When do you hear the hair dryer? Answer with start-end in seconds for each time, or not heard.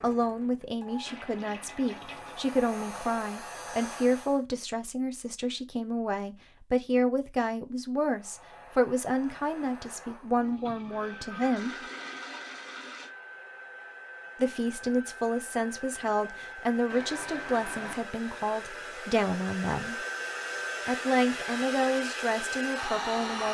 0.0-4.5, 8.1-23.4.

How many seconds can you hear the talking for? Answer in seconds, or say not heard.
20 s.